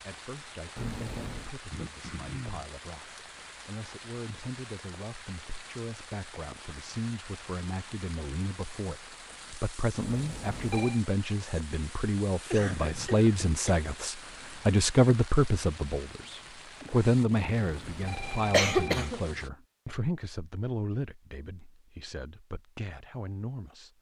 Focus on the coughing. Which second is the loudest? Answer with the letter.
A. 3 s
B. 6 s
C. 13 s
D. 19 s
D.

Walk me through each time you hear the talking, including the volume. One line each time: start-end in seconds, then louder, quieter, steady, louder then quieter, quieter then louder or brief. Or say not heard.
0.1-23.9 louder then quieter.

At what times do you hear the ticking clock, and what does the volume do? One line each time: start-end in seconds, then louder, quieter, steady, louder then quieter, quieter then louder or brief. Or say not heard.
not heard.